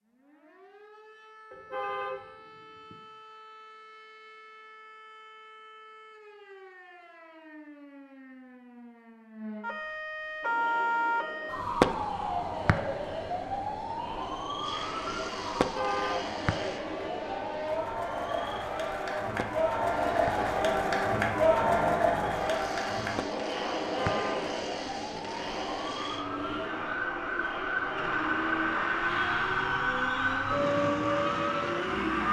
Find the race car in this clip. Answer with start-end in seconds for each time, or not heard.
14.6-32.2.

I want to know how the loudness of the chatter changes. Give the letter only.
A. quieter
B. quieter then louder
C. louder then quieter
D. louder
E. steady
C.